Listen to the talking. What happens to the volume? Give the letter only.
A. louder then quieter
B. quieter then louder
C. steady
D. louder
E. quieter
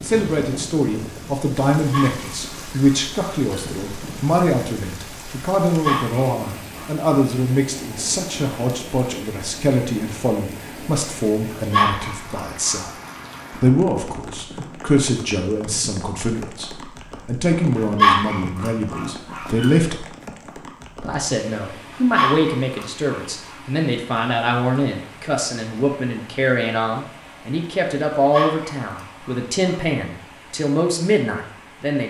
C.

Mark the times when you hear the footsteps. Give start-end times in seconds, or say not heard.
not heard.